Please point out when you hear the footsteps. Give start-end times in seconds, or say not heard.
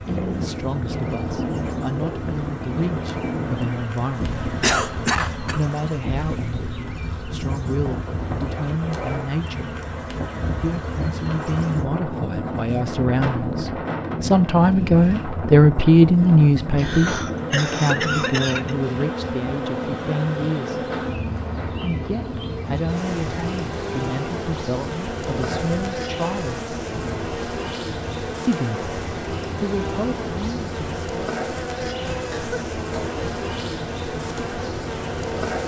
not heard.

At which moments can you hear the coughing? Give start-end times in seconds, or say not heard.
4.4-5.6, 16.8-18.8, 32.3-33.2.